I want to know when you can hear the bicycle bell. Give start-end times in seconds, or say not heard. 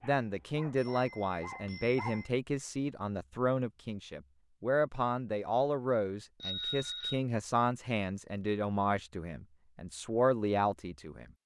0.8-2.3, 6.4-7.2.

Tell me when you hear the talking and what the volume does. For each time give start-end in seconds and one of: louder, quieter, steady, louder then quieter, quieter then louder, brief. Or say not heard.
0.0-11.3 steady.